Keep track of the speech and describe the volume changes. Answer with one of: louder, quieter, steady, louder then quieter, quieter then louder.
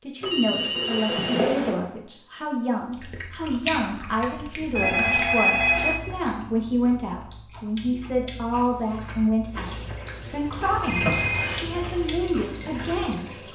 steady.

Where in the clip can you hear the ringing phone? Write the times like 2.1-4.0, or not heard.
0.2-1.8, 4.8-6.0, 10.8-11.7.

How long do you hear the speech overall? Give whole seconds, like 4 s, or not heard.
13 s.